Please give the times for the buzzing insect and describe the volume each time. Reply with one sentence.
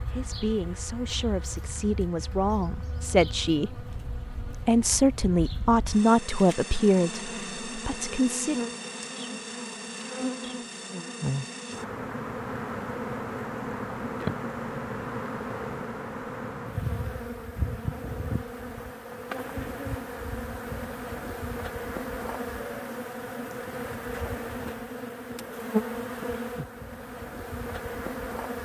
The buzzing insect can be heard from 0.0 to 28.5 s, getting louder.